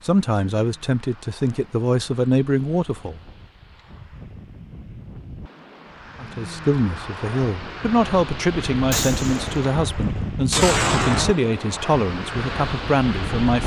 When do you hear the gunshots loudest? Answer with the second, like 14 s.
11 s.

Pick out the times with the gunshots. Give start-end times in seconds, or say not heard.
8.9-11.4.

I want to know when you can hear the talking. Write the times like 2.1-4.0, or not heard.
0.1-3.2, 6.2-13.6.